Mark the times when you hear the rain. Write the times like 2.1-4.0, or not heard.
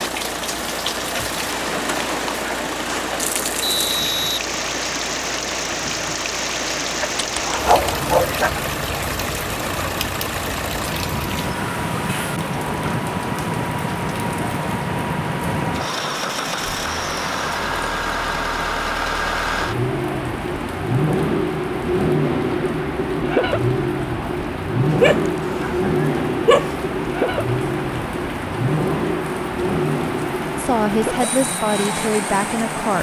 0.0-32.9.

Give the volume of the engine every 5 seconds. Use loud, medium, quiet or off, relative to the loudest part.
medium, medium, medium, loud, loud, loud, medium.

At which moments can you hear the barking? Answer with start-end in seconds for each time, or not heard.
7.0-8.5, 25.0-26.7.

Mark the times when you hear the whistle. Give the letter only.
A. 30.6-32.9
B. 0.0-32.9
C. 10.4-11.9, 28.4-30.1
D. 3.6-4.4
D.